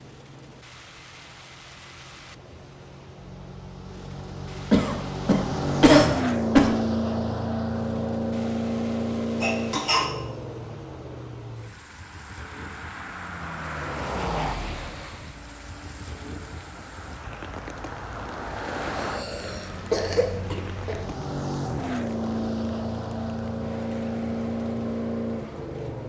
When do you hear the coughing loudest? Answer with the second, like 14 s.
6 s.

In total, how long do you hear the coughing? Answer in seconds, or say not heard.
5 s.